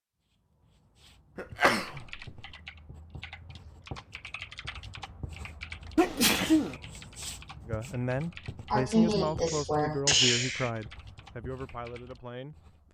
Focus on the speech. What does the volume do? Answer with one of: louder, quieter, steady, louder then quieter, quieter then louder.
quieter.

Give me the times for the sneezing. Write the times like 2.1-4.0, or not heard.
1.4-2.4, 6.0-6.8, 8.7-10.7.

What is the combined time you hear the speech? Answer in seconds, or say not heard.
5 s.